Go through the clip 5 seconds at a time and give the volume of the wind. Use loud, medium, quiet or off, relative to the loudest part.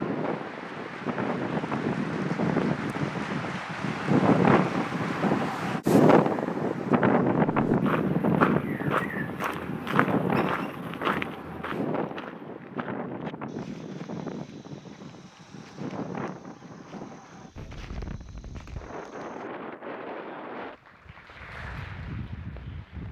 loud, loud, medium, quiet, quiet.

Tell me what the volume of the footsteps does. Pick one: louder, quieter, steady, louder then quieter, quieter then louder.
quieter.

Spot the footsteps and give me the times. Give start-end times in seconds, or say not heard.
7.5-19.5.